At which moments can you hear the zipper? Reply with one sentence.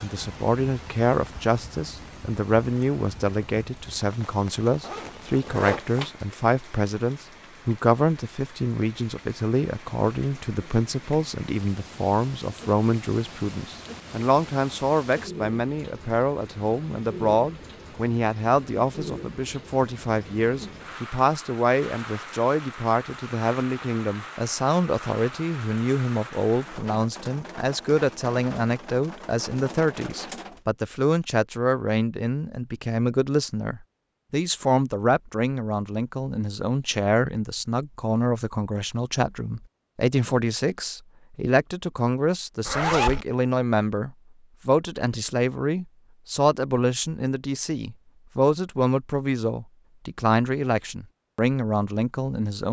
You can hear the zipper from 4.8 to 6.1 s and from 42.6 to 43.2 s.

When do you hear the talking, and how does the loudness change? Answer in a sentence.
You can hear the talking from 0.0 to 52.6 s, at a steady volume.